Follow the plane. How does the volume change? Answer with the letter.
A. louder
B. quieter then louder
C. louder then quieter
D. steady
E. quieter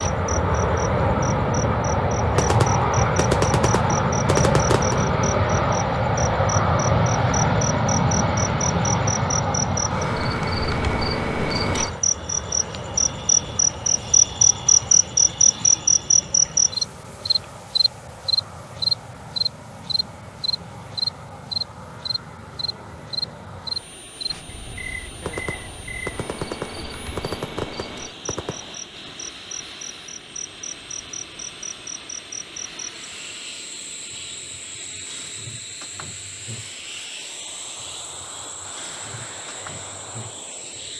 E.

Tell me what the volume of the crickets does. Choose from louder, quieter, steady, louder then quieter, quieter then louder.
louder then quieter.